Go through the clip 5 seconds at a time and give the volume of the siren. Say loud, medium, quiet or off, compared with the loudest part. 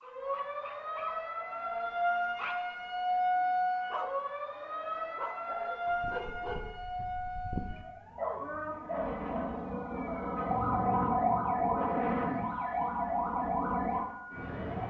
loud, medium, loud.